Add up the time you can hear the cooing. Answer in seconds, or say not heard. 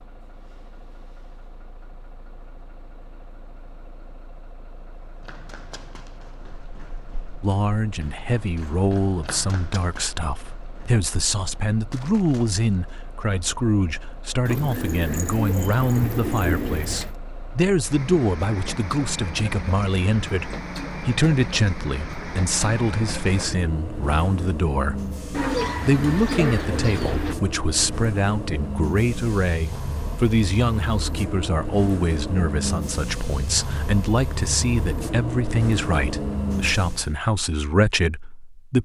5 s.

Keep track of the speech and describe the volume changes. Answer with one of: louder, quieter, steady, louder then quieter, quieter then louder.
steady.